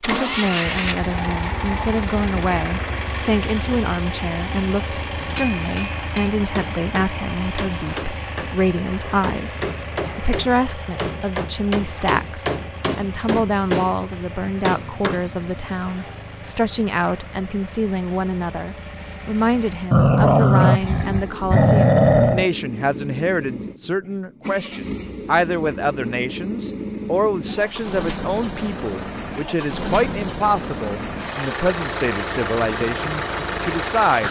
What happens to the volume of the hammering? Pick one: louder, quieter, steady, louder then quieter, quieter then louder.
louder.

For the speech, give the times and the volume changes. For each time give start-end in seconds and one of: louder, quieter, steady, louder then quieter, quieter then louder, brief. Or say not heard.
0.0-34.2 steady.